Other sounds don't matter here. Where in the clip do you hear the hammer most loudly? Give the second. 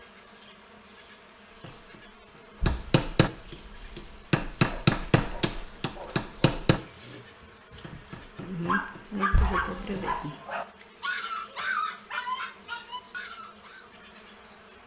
5 s.